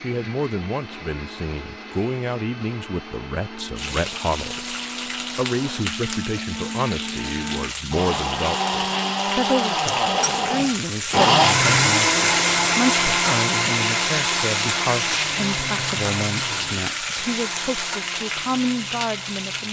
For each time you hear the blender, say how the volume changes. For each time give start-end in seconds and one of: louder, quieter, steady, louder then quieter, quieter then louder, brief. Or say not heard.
0.0-19.6 louder then quieter.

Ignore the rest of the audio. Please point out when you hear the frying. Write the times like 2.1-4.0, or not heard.
3.8-19.6.